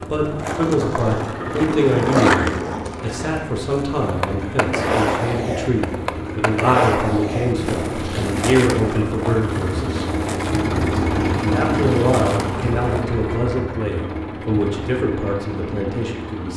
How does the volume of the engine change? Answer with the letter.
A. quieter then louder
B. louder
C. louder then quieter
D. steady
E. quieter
C.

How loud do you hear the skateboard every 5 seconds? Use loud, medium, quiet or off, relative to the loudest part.
loud, loud, medium, off.